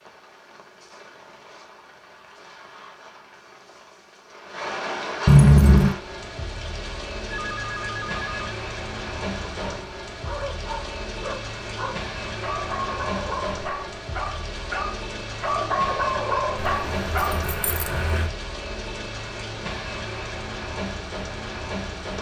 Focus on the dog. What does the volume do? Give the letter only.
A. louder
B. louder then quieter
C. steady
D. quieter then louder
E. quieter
A.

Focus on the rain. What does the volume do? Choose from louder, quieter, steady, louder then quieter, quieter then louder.
louder.